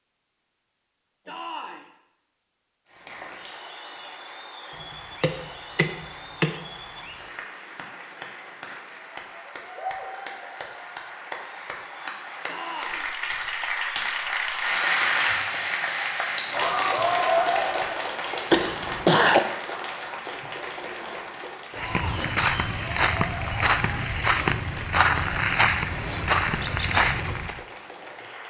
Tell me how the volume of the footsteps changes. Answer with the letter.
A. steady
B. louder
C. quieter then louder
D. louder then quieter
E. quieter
A.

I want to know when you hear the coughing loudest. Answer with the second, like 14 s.
19 s.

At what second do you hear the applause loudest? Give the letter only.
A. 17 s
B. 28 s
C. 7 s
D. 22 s
A.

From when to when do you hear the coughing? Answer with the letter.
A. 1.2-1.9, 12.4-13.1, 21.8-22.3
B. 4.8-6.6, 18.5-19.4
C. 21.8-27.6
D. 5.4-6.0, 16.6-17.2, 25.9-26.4
B.